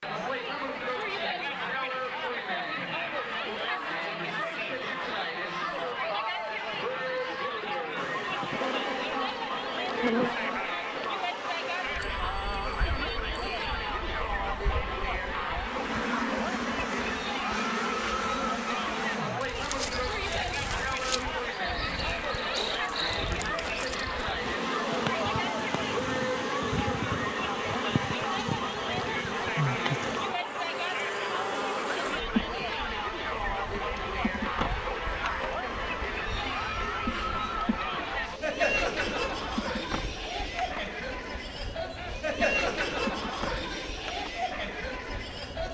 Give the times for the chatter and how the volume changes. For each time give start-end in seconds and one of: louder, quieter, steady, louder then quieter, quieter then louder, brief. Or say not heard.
0.0-45.6 steady.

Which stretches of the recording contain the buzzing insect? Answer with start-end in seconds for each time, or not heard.
8.0-45.6.